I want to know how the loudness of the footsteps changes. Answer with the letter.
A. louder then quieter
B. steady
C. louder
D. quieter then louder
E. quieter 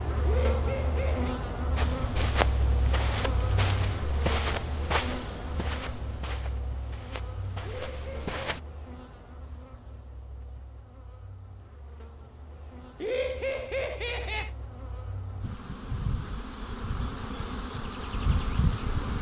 E.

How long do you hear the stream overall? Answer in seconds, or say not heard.
not heard.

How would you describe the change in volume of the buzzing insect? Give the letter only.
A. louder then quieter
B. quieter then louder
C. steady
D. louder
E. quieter
B.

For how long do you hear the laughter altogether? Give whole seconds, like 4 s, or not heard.
3 s.